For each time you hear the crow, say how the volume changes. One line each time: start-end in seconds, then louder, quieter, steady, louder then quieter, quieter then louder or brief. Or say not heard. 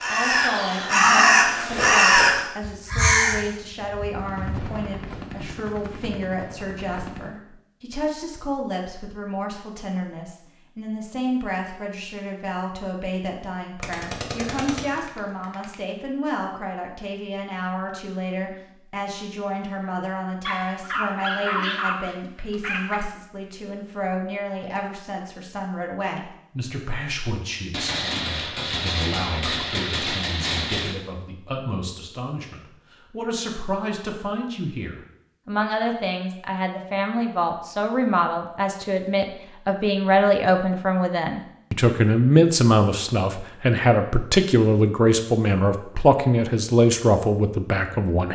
0.0-4.8 quieter.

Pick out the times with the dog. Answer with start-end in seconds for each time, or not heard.
20.4-23.0.